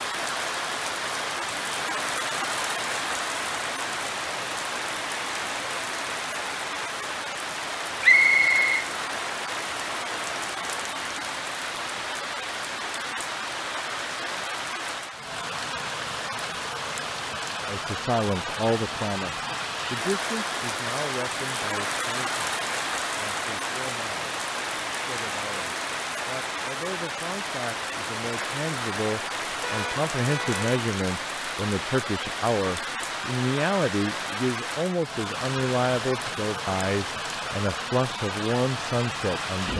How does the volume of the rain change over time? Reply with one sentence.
The volume of the rain stays about the same.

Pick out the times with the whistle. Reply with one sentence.
You can hear the whistle from 8.0 to 8.8 s.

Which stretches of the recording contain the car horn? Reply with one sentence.
The car horn can be heard from 29.6 to 30.8 s.